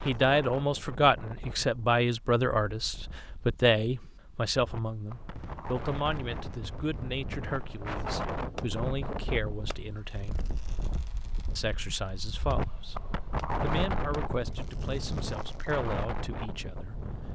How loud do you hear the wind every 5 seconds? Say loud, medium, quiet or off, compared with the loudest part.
medium, loud, loud, loud.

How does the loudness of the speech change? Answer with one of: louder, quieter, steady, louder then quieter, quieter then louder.
quieter.